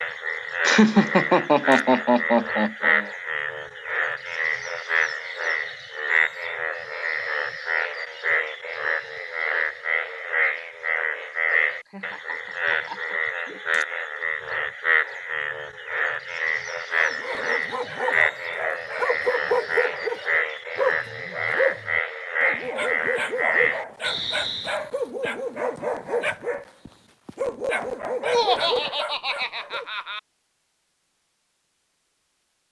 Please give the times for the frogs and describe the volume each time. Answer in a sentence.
You can hear the frogs from 0.0 to 24.8 s, at a steady volume.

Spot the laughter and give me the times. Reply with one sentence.
The laughter can be heard from 0.6 to 3.1 s, from 11.8 to 13.8 s and from 28.2 to 30.2 s.